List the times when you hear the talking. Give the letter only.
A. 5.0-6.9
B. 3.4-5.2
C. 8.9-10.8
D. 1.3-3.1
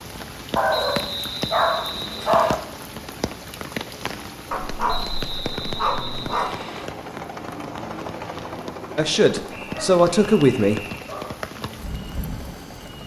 C.